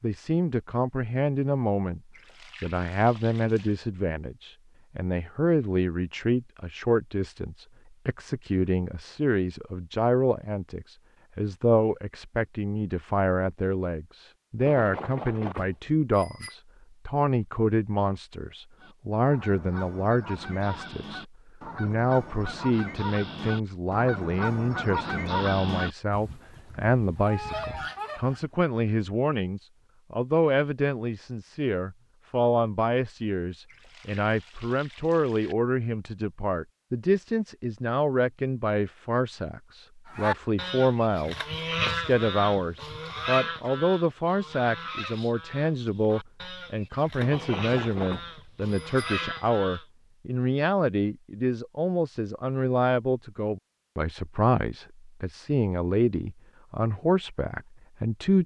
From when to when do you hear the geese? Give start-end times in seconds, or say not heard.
18.8-28.6, 40.0-49.9.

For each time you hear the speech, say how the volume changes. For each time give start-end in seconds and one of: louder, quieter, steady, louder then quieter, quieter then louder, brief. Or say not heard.
0.0-2.0 brief
2.6-58.4 steady.